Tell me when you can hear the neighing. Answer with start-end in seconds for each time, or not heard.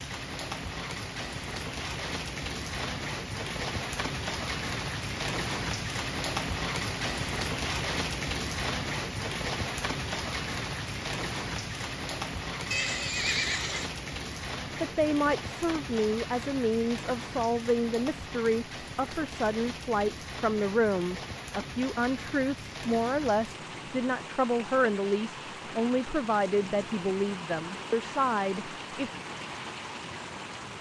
12.7-13.9.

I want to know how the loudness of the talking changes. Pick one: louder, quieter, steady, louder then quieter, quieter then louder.
steady.